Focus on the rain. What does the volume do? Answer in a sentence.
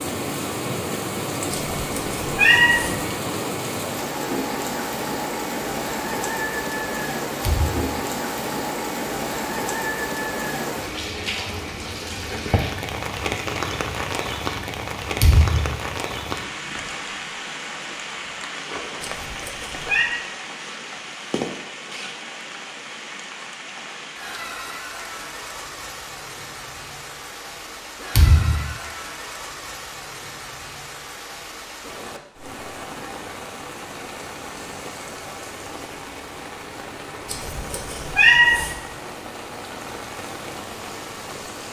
The loudness of the rain goes down.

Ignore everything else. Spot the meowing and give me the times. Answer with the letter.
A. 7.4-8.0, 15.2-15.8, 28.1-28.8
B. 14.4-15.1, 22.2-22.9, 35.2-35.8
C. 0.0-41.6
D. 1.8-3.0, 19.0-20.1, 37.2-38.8
D.